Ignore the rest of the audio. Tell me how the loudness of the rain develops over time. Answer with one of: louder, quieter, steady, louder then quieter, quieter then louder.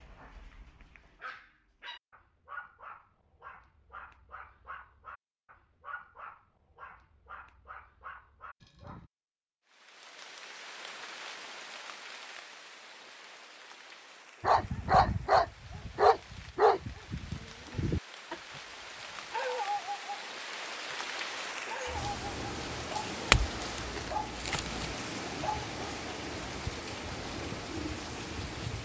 quieter then louder.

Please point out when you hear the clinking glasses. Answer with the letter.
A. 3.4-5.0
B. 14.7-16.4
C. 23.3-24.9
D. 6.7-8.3
C.